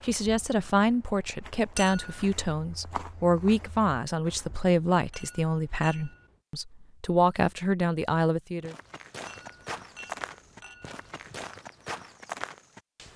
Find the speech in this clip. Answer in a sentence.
The speech can be heard from 0.1 to 8.8 s.